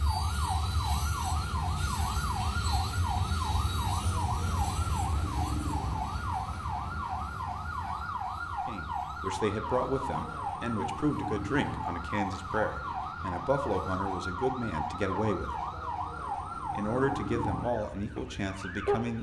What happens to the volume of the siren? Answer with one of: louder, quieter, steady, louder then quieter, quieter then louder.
steady.